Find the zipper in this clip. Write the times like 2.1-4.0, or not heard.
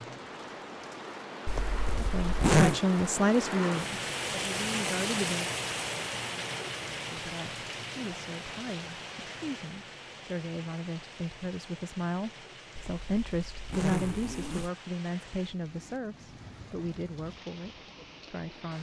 1.4-2.8, 12.8-14.7.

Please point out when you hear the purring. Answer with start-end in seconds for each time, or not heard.
not heard.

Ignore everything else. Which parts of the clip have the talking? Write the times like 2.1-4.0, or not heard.
1.9-5.5, 7.0-18.7.